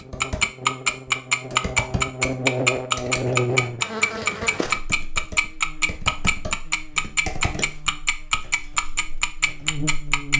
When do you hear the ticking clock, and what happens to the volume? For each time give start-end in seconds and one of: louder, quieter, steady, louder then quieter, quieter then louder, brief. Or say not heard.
0.2-10.3 quieter.